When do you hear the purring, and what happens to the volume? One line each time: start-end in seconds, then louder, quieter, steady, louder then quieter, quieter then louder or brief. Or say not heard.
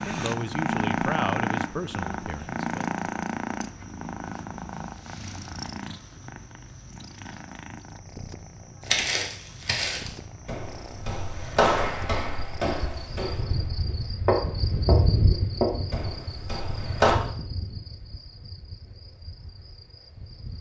0.0-13.2 quieter.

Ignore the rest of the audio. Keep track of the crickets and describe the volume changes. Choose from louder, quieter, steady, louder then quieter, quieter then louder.
louder then quieter.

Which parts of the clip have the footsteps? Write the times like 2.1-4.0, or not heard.
8.8-17.1.